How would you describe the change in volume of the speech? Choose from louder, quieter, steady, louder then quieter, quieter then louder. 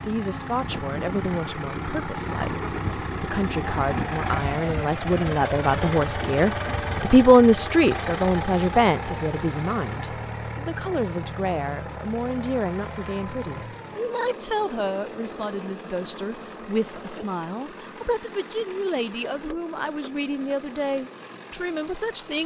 louder then quieter.